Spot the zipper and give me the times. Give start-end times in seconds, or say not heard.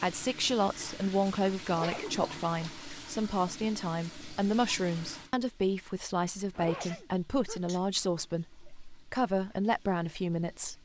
1.7-2.1, 6.5-7.0.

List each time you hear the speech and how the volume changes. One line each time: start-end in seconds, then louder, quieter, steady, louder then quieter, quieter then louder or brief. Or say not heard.
0.0-10.7 steady.